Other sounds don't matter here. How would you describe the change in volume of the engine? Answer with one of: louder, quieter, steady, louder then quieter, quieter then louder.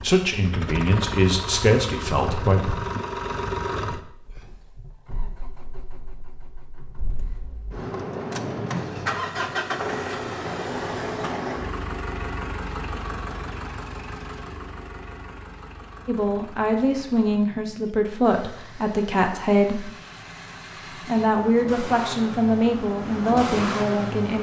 quieter then louder.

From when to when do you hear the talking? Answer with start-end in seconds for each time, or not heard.
0.0-2.8, 16.1-19.9, 21.0-24.3.